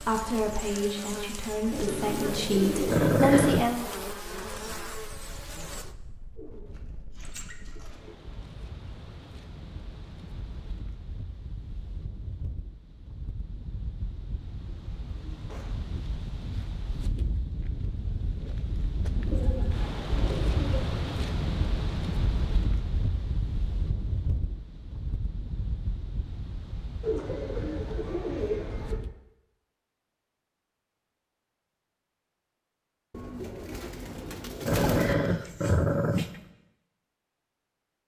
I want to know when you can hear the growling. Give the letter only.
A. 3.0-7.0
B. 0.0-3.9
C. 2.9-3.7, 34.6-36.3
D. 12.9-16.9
C.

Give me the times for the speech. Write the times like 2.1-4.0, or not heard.
0.0-3.9.